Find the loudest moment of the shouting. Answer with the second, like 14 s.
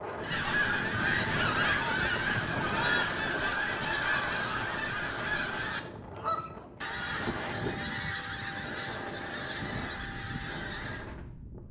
3 s.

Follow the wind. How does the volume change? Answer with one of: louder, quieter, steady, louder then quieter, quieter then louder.
quieter.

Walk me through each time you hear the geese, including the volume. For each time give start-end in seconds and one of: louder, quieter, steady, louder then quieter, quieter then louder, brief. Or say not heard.
0.2-11.2 quieter.